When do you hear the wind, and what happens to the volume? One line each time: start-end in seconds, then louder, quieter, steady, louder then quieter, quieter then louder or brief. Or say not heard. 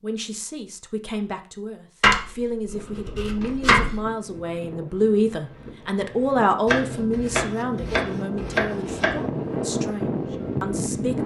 2.6-11.2 louder.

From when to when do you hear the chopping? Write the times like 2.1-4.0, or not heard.
2.0-4.0, 6.7-9.2.